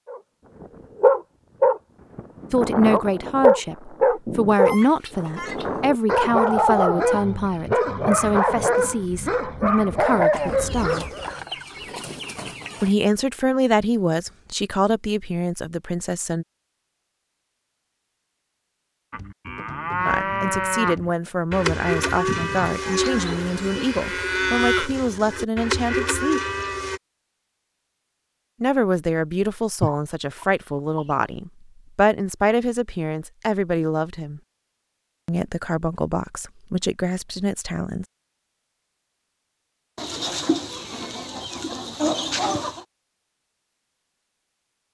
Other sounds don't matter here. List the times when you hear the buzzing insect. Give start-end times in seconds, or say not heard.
not heard.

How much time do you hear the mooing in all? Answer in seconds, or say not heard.
8 s.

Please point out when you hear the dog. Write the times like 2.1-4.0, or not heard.
0.1-11.3.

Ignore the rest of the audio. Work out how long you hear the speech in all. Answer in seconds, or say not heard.
27 s.